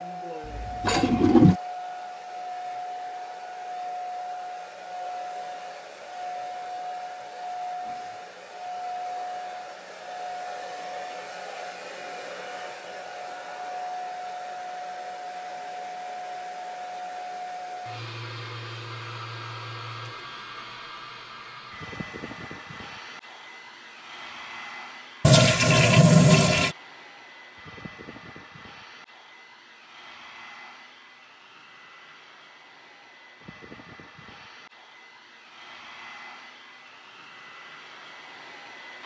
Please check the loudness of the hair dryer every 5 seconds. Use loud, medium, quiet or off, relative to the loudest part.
loud, loud, loud, loud, medium, medium, quiet, medium.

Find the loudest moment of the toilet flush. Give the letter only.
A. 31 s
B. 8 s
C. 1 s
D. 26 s
D.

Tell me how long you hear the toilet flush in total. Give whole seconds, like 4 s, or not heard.
3 s.